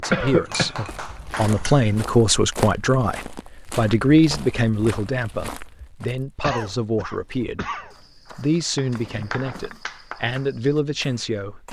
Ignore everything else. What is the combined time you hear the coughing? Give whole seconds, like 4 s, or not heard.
2 s.